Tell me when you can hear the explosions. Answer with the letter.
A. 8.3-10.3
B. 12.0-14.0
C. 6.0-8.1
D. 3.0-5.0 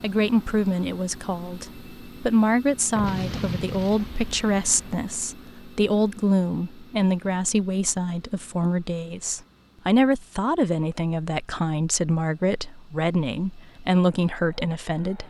D.